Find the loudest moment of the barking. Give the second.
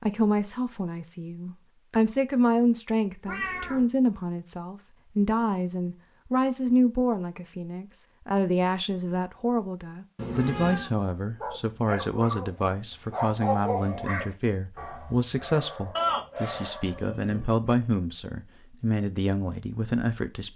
14 s.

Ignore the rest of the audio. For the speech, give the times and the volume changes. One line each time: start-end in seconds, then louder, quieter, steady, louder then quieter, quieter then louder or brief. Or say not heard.
0.0-20.5 steady.